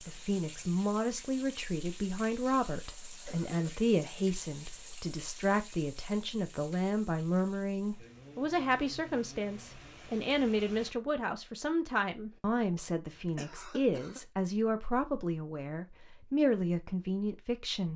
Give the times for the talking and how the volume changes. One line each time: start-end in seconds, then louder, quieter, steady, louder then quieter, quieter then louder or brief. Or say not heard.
0.1-17.9 steady.